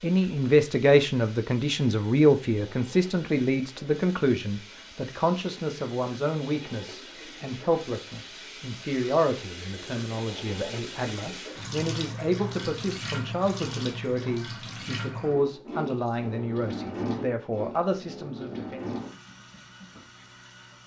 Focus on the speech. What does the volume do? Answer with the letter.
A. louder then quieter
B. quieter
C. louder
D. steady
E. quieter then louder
B.